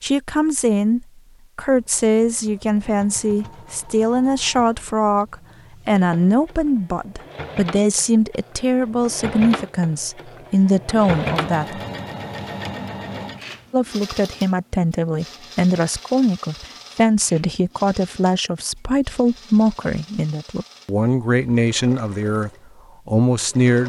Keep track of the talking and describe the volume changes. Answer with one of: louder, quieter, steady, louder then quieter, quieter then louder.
steady.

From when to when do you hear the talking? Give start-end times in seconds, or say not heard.
0.0-11.8, 13.7-23.8.